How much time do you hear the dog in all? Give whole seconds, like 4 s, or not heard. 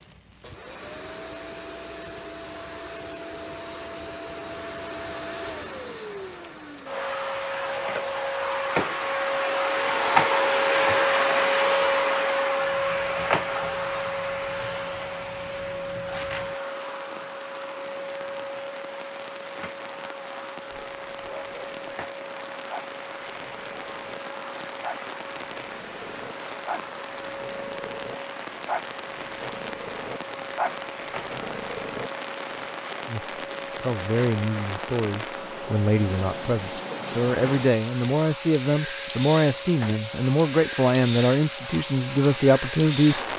10 s.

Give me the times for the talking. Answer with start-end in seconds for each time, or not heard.
33.0-43.2.